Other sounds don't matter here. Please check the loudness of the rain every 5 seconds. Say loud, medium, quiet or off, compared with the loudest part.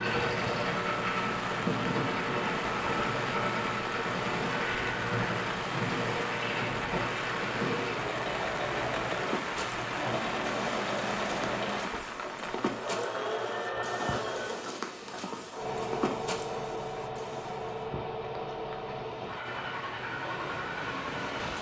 loud, loud, loud, medium, loud.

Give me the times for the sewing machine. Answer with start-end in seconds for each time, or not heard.
0.0-21.5.